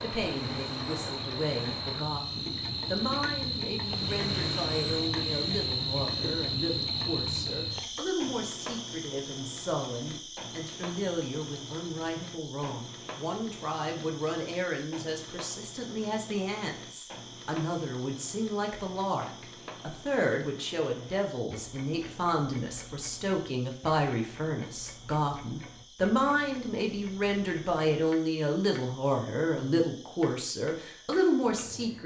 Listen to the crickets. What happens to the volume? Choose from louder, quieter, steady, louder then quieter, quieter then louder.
quieter.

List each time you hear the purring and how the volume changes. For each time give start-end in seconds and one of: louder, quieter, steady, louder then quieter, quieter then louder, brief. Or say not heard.
not heard.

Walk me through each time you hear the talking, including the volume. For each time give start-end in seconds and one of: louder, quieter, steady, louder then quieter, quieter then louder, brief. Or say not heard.
0.0-32.0 louder.